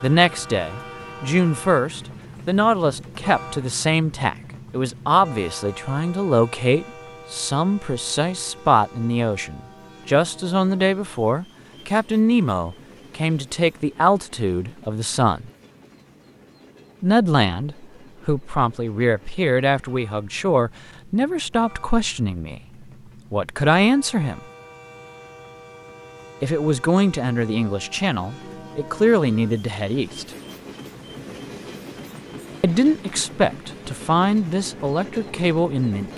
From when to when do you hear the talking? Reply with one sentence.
You can hear the talking from 0.0 to 15.5 s, from 17.0 to 22.6 s, from 23.3 to 24.4 s, from 26.4 to 30.3 s and from 32.6 to 36.1 s.